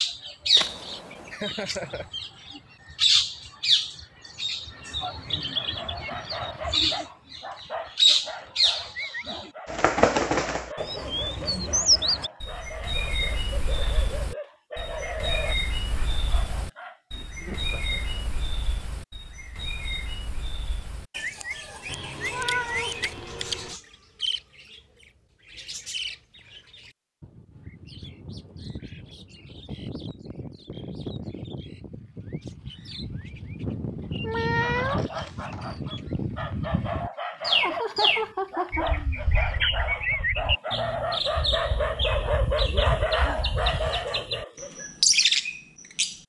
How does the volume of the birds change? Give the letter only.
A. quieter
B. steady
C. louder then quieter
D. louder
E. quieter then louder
E.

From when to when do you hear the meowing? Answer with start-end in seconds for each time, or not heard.
0.6-1.3, 21.9-23.8, 34.0-35.8.